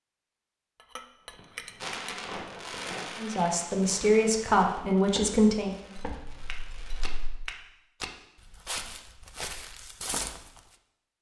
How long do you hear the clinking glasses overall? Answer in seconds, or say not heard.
3 s.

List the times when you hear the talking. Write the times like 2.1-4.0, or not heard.
3.1-5.8.